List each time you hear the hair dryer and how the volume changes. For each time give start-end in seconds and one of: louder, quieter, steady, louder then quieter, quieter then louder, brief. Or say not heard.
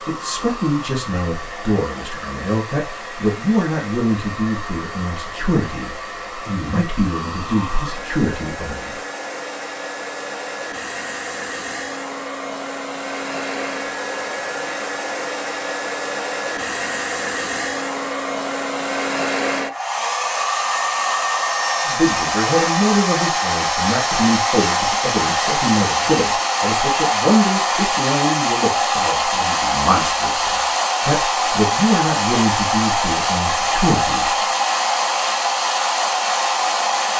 0.0-37.1 louder.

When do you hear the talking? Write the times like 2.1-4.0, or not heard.
0.1-8.9, 21.9-34.4.